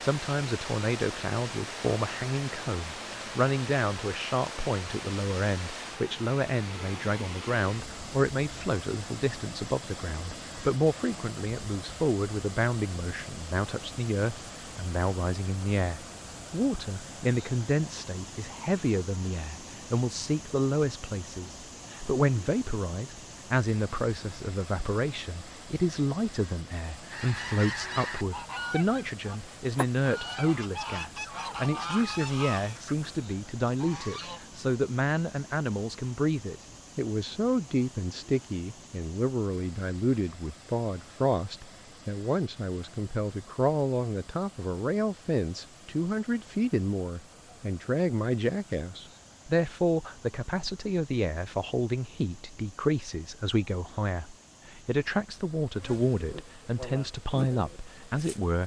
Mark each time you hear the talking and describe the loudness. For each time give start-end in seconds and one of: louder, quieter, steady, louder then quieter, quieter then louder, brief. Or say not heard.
0.0-58.6 steady.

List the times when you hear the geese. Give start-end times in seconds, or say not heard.
27.1-34.4.